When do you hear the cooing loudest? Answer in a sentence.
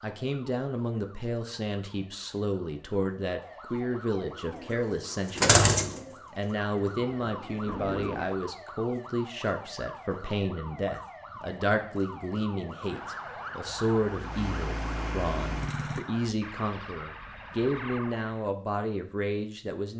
The volume of the cooing peaks at 6 seconds.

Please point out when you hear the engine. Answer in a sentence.
You can hear the engine from 13.7 to 16.1 s.